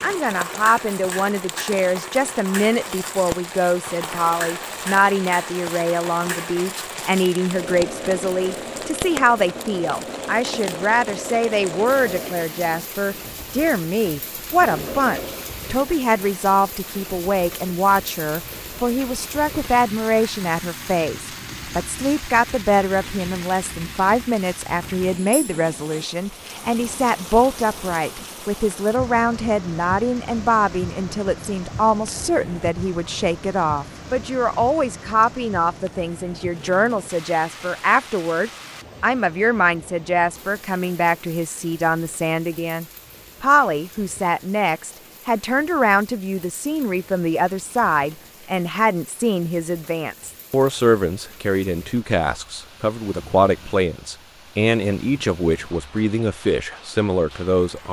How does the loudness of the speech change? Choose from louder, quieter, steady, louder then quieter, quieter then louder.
steady.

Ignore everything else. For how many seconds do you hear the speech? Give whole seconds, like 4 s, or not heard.
58 s.